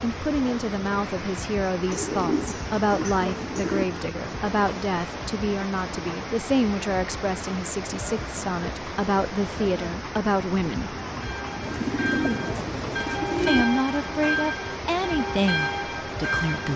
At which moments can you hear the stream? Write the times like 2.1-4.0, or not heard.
0.0-16.7.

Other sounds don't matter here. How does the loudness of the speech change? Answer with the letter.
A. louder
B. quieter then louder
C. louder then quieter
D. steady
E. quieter
D.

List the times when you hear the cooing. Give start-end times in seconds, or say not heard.
1.9-3.9, 11.6-13.7.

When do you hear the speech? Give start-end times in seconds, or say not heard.
0.0-10.9, 13.4-16.7.